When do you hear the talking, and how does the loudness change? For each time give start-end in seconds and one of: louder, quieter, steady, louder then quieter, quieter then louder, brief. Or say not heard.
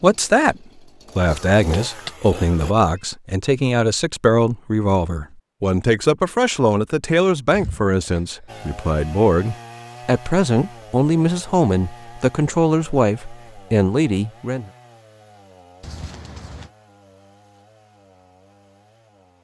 0.0-14.7 steady.